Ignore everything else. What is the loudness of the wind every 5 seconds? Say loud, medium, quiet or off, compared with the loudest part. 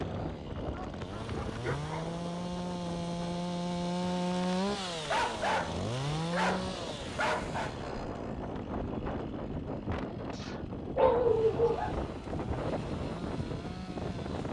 medium, loud, loud.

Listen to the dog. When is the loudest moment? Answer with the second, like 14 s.
11 s.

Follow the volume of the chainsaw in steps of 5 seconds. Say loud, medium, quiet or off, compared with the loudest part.
loud, loud, medium.